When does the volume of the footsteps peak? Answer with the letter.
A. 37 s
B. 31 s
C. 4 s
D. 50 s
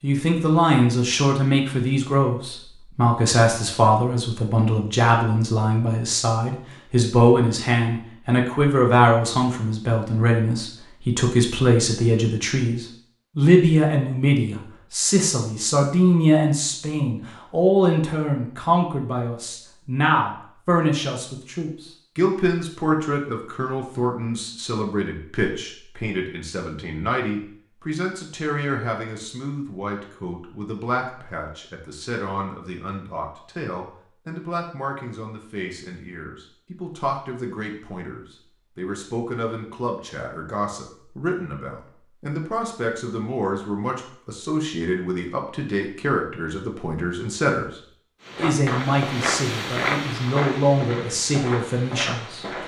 D.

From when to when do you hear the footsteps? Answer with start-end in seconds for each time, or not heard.
48.2-52.6.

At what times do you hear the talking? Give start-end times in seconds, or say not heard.
0.0-52.5.